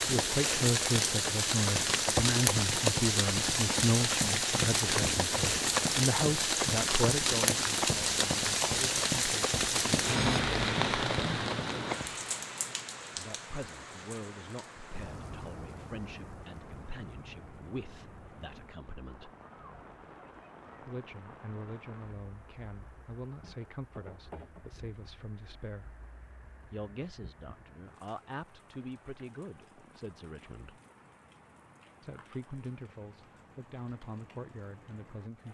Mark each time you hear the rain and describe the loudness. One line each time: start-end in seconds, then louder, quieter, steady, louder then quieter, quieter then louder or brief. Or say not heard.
0.0-35.4 quieter.